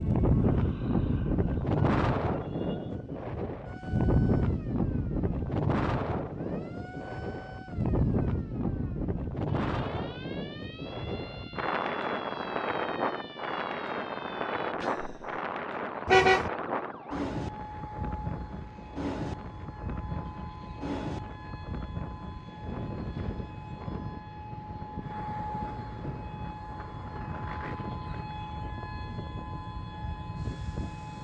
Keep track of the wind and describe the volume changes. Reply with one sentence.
The loudness of the wind goes down.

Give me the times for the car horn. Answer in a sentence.
The car horn can be heard from 16.1 to 16.5 s.